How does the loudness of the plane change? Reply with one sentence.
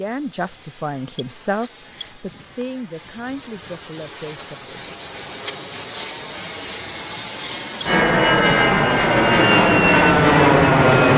The volume of the plane goes up.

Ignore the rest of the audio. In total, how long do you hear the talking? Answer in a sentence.
You can hear the talking for 5 seconds altogether.